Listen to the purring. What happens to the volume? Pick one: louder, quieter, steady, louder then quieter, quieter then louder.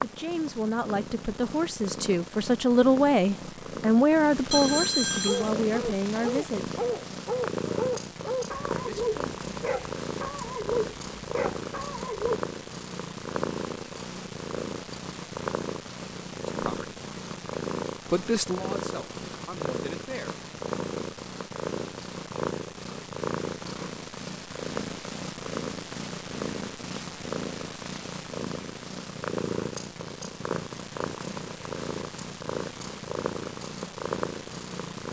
steady.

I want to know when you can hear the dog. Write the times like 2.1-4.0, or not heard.
5.2-12.3.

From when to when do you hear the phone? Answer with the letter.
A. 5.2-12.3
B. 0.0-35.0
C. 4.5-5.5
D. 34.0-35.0
C.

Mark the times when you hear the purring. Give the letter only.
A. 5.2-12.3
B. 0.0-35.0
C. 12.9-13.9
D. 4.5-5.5
B.